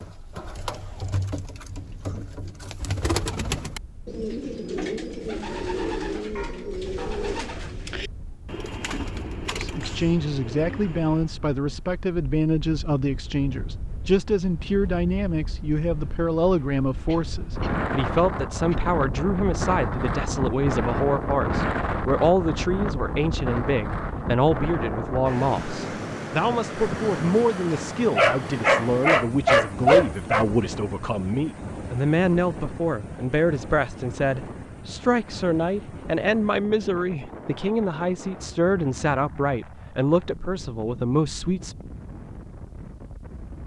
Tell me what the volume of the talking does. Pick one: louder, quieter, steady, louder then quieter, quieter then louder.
steady.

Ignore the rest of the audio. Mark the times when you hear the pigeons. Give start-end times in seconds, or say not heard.
0.0-11.3.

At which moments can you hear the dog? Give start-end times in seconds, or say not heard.
5.5-7.5, 27.7-30.4.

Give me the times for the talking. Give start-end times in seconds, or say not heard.
9.6-41.8.